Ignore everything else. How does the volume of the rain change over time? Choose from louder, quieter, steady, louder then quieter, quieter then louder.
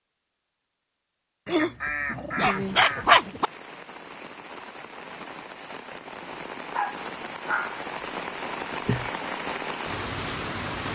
louder.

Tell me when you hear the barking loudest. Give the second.
3 s.